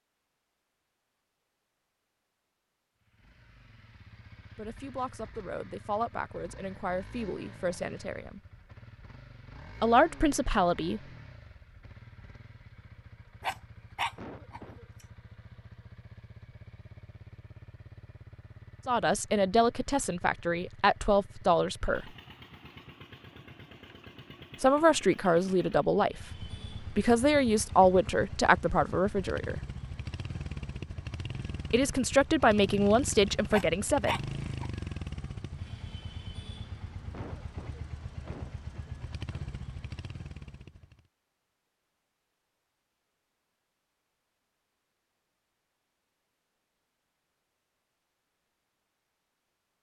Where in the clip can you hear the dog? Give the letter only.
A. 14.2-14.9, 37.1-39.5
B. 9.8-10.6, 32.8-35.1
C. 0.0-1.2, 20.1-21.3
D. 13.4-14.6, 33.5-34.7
D.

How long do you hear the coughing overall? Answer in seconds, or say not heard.
3 s.